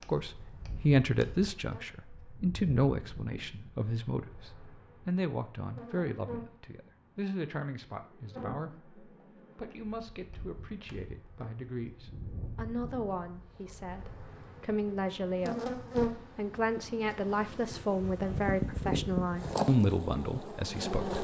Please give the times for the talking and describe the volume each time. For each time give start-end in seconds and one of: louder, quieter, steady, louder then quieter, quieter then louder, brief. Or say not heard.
0.1-21.1 quieter then louder.